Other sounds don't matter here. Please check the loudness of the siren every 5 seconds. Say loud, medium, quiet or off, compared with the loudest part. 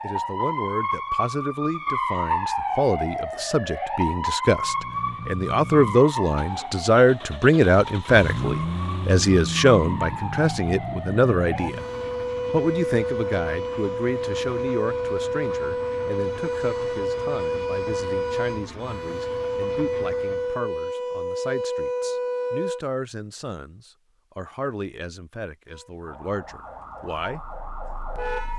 loud, medium, loud, loud, loud, medium.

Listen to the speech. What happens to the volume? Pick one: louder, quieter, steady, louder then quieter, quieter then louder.
louder then quieter.